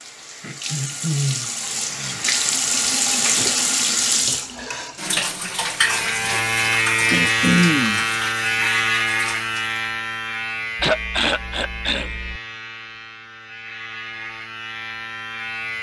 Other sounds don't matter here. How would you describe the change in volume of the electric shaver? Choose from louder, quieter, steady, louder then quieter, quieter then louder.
quieter.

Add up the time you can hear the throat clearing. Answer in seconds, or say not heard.
4 s.